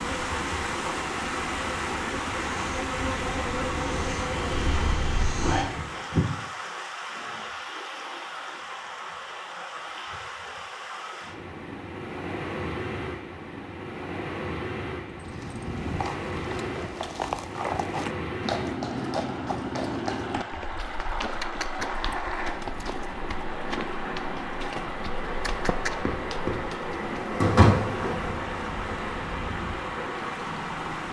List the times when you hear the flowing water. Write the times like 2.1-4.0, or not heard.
0.0-31.0.